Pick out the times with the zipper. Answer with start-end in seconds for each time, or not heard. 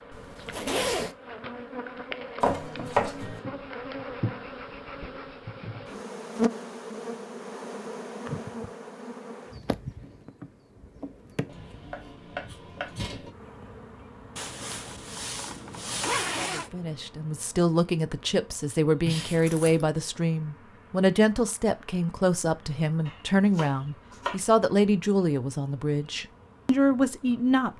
0.1-1.1, 14.3-16.7, 19.1-19.9.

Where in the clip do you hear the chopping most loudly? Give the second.
3 s.